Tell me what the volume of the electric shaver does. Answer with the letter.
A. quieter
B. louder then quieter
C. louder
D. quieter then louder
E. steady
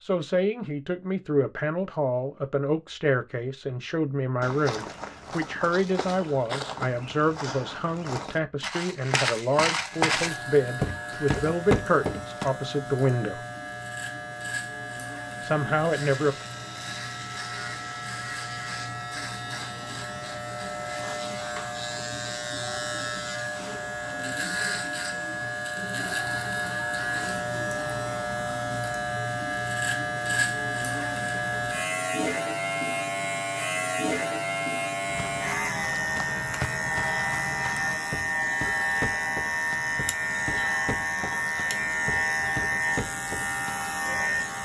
C.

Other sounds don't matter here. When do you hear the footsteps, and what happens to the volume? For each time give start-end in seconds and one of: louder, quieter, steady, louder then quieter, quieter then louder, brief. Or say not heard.
4.4-12.5 louder
35.0-43.8 steady.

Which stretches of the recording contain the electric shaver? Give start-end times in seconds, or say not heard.
9.8-44.6.